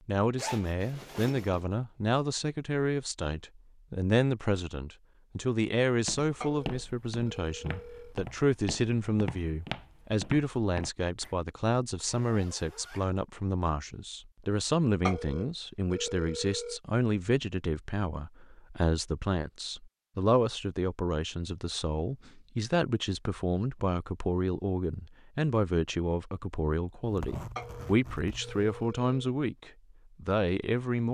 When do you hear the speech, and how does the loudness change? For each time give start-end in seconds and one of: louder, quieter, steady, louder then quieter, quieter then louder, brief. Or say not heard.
0.1-31.0 steady.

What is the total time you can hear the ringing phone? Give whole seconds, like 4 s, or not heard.
5 s.